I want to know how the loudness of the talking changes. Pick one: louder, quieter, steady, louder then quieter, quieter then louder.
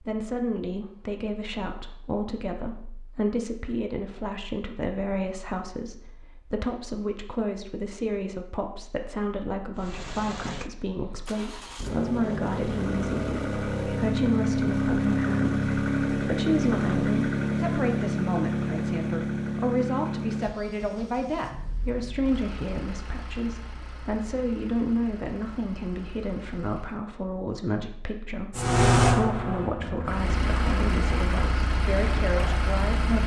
steady.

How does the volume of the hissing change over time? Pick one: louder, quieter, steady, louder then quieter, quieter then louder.
quieter.